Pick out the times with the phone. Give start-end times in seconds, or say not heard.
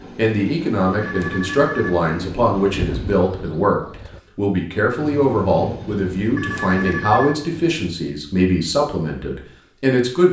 1.0-1.9, 6.3-7.3.